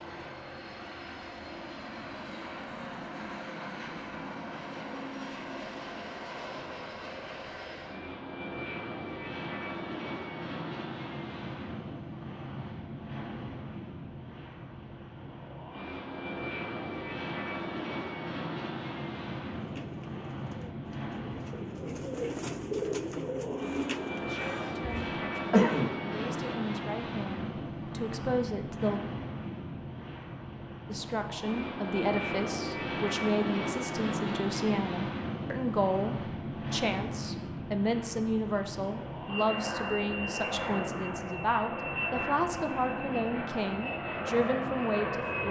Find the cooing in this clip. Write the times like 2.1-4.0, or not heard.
19.6-24.4.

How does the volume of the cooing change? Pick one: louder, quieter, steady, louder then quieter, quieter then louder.
louder.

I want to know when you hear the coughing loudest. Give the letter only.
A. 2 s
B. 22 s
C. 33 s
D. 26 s
D.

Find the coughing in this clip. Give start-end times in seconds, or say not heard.
24.4-26.4.